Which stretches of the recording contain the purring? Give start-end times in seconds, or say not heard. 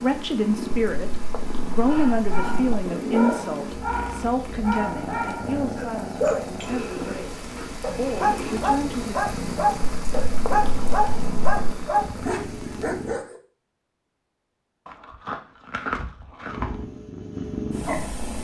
0.0-13.2, 16.4-18.3.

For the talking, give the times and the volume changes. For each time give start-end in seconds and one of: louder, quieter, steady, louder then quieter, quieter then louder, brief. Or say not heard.
0.0-9.2 quieter.